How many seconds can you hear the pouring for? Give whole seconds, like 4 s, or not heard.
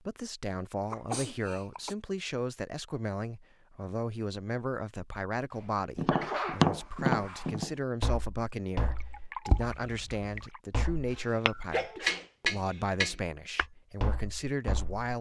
2 s.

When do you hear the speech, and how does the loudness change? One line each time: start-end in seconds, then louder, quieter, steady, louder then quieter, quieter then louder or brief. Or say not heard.
0.1-15.1 steady.